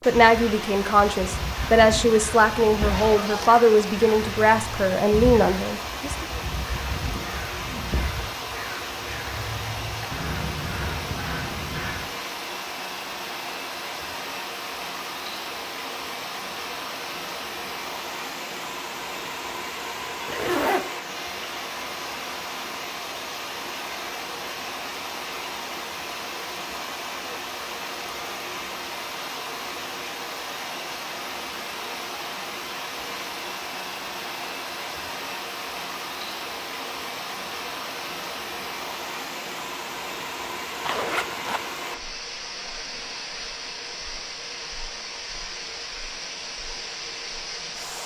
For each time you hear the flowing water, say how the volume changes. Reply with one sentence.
The flowing water can be heard from 0.0 to 48.0 s, at a steady volume.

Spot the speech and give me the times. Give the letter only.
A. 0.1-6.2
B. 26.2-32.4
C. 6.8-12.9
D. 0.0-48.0
A.